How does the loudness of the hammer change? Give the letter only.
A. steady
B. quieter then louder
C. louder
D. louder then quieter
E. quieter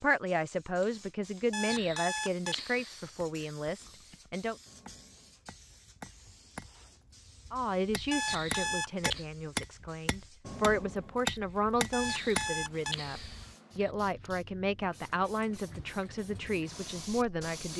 C.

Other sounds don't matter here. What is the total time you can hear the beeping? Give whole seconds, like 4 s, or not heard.
5 s.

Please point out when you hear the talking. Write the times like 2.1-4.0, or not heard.
0.0-4.5, 7.5-17.7.